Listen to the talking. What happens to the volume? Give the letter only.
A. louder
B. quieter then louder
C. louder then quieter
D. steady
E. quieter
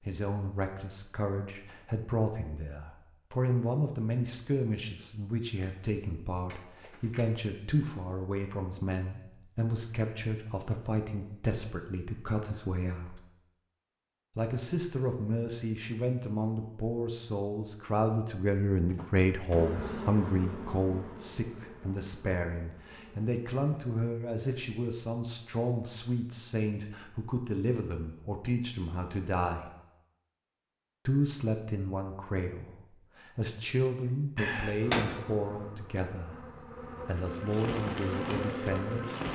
D.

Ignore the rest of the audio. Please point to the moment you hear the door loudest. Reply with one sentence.
The loudest moment of the door is at 35 seconds.